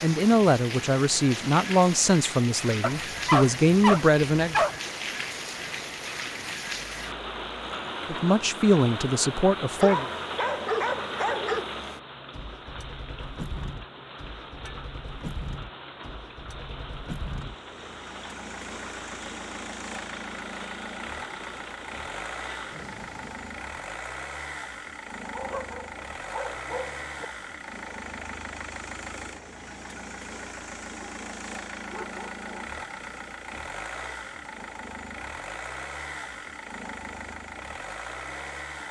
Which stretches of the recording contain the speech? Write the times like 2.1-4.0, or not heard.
0.0-4.6, 8.1-10.1.